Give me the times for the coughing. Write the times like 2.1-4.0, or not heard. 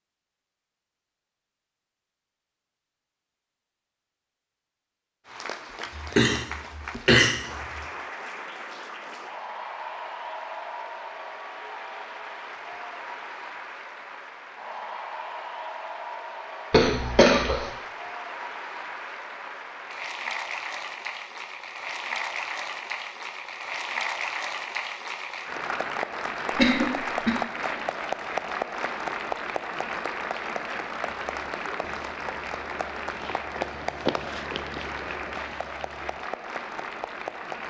6.0-7.8, 16.7-17.6, 26.6-27.4.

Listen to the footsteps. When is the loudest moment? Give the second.
34 s.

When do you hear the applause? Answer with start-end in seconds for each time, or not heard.
5.2-37.6.